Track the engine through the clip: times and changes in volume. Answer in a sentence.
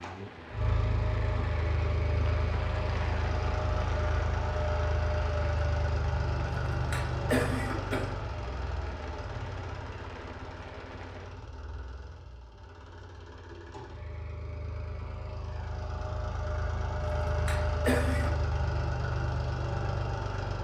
The engine can be heard from 0.0 to 20.6 s, getting quieter then louder.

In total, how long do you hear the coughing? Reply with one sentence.
You can hear the coughing for 3 seconds altogether.